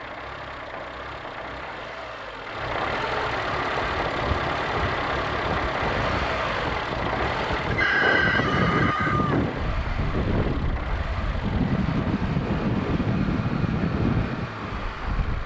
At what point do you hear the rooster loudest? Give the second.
8 s.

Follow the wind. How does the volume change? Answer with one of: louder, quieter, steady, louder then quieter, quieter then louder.
louder.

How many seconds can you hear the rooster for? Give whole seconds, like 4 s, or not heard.
2 s.